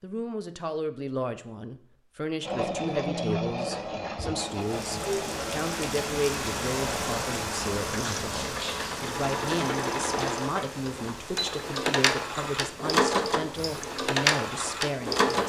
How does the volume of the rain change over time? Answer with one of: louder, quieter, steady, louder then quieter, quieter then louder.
quieter.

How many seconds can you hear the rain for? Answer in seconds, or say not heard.
11 s.